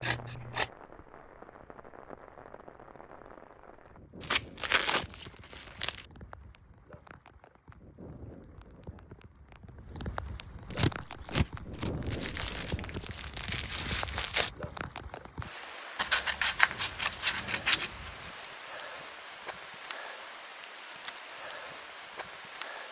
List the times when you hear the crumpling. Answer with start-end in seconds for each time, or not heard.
4.2-6.0, 12.0-14.5.